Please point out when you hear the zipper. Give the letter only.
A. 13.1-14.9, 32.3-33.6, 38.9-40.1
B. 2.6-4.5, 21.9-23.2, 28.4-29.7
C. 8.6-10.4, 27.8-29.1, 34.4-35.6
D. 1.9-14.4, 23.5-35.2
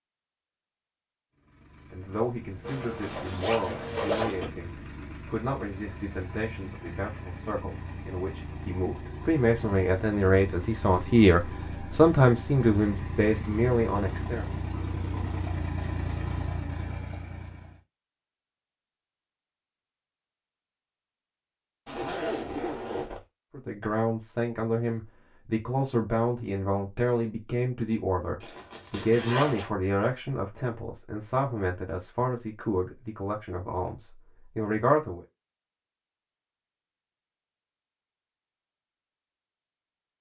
B.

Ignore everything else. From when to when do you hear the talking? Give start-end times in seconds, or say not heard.
1.9-14.4, 23.5-35.2.